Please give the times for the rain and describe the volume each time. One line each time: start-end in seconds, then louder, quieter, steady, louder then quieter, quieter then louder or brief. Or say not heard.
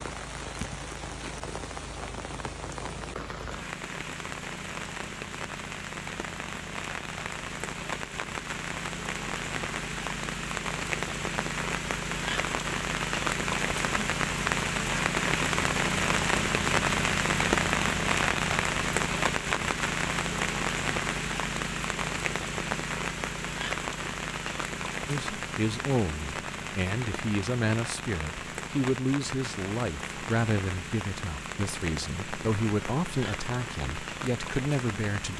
0.0-35.3 louder then quieter.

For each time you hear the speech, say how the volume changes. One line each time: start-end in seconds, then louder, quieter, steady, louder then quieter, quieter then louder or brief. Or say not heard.
25.1-35.3 steady.